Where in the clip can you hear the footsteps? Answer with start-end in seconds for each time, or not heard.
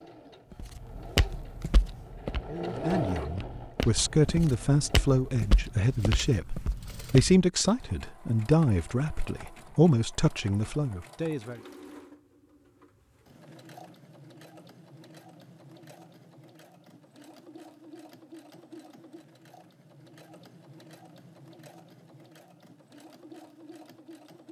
0.5-7.4.